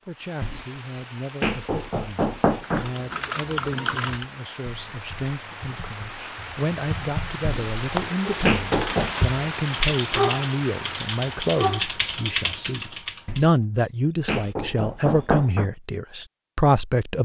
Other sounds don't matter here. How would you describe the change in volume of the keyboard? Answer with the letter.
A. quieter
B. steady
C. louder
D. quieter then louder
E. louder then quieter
D.